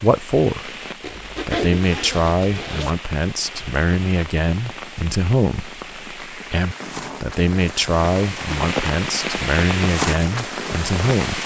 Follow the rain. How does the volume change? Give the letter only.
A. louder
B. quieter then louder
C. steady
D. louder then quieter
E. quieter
A.